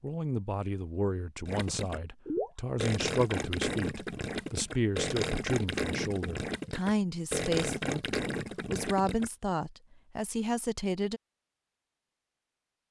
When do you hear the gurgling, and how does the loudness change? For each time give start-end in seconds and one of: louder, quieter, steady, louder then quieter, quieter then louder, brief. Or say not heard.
1.4-9.3 steady.